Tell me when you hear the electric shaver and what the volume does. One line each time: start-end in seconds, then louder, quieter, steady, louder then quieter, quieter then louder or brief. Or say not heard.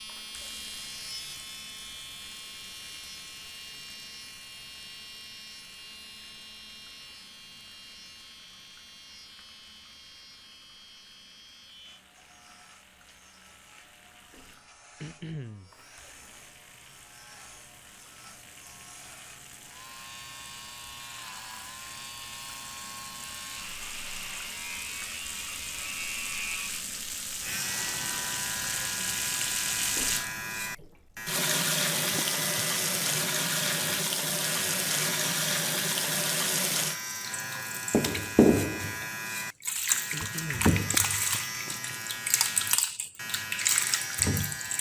0.0-44.7 quieter then louder.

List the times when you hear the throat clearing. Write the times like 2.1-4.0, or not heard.
15.0-15.7, 40.1-40.8.